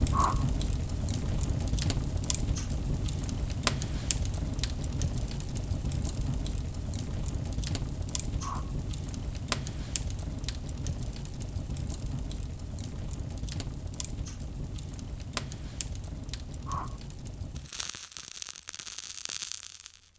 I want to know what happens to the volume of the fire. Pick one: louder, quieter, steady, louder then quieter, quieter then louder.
quieter.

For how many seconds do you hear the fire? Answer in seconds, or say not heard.
20 s.